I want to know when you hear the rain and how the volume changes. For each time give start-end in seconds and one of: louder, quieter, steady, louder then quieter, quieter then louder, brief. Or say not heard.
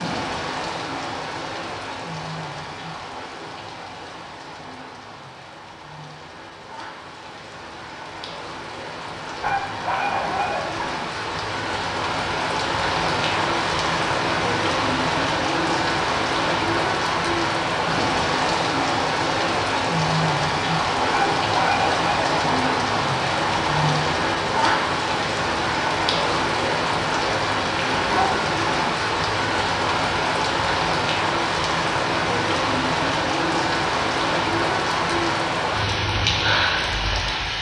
0.0-37.5 louder.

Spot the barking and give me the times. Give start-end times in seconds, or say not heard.
9.4-10.8, 21.1-22.3.